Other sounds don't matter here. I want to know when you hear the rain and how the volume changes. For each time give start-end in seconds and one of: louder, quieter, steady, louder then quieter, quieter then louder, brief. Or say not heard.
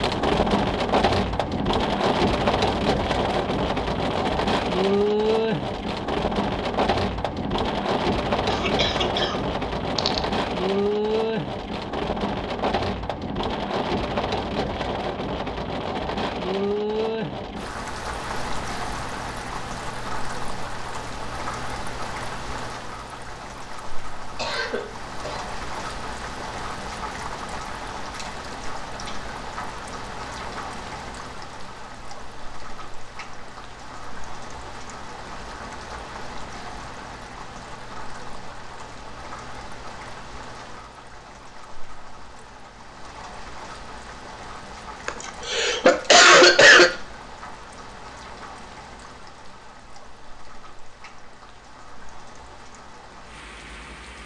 0.0-54.2 quieter.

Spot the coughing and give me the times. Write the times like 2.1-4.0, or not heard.
8.5-10.2, 24.4-25.4, 45.0-46.9.